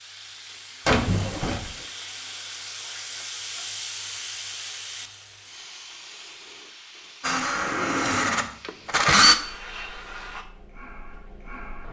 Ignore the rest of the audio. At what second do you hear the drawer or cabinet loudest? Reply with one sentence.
The volume of the drawer or cabinet peaks at 1 second.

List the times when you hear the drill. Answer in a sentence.
You can hear the drill from 7.2 to 9.3 s.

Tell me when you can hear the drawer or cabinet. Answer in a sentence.
You can hear the drawer or cabinet from 0.8 to 1.9 s and from 7.5 to 9.3 s.